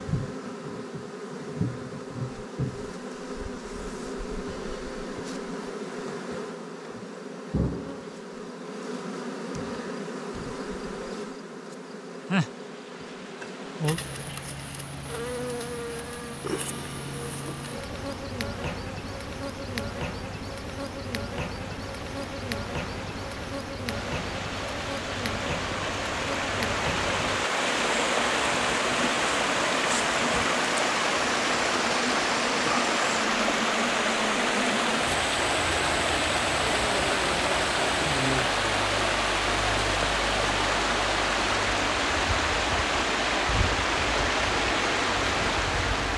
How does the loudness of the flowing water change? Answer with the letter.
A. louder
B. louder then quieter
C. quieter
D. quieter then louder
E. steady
A.